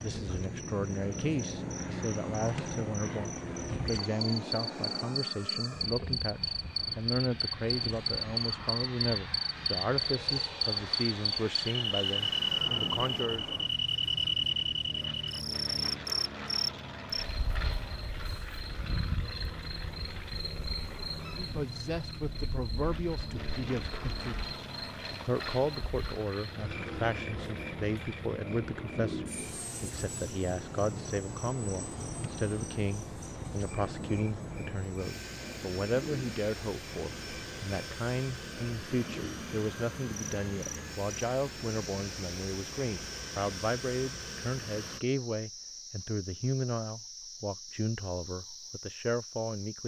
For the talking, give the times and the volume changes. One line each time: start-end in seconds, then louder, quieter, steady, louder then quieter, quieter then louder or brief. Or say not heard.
0.0-13.6 steady
21.2-49.8 steady.